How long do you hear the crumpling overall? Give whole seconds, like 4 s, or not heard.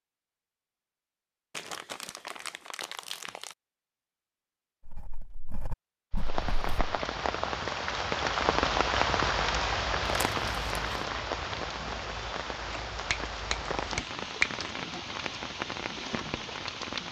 3 s.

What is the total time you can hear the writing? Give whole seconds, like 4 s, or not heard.
2 s.